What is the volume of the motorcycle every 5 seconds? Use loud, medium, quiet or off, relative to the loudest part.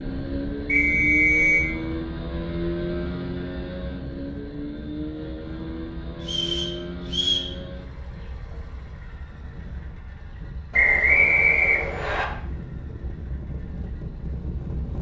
loud, medium, quiet.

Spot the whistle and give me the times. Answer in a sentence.
You can hear the whistle from 0.7 to 1.7 s, from 6.2 to 7.5 s and from 10.7 to 12.2 s.